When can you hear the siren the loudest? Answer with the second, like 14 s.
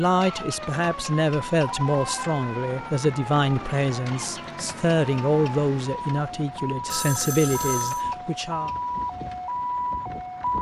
10 s.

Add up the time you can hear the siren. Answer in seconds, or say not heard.
10 s.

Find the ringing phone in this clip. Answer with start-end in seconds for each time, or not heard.
1.6-2.3, 6.9-8.1.